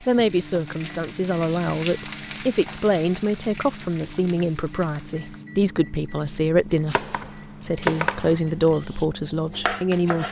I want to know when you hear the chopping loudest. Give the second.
8 s.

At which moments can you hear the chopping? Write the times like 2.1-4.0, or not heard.
6.8-10.2.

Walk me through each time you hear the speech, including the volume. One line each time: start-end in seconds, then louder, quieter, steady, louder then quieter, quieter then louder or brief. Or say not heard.
0.0-10.2 steady.